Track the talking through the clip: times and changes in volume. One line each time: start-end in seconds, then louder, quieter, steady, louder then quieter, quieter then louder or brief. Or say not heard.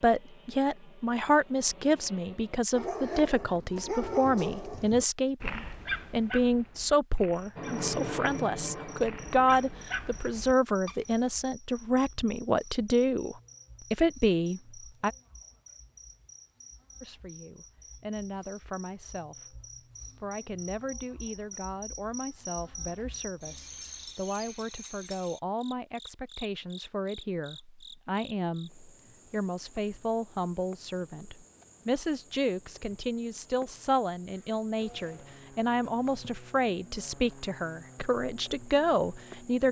0.0-15.1 steady
17.0-19.6 brief
20.2-39.6 louder.